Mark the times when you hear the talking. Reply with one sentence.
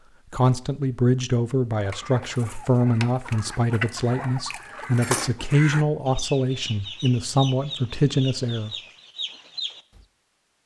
You can hear the talking from 0.3 to 8.8 s.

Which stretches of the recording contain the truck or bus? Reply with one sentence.
You can't hear the truck or bus here.